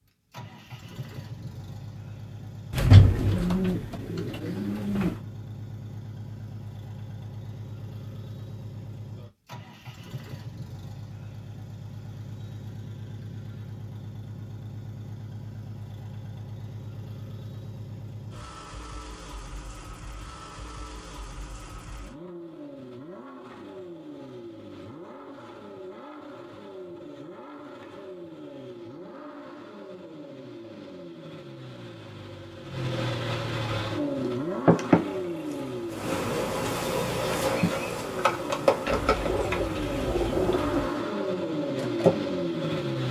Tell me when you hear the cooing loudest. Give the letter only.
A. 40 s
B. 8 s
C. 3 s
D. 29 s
C.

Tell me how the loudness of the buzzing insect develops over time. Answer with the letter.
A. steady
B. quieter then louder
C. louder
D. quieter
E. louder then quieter
D.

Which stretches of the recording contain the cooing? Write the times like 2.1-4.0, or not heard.
2.7-5.2, 38.9-40.9.